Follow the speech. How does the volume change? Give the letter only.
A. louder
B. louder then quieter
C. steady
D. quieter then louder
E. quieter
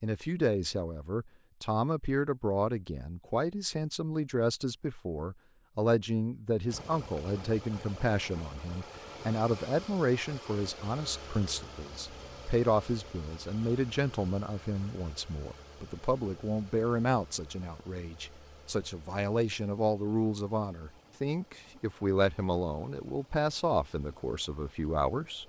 C.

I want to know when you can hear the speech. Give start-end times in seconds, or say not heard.
0.0-25.4.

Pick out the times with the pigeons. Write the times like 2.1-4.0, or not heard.
not heard.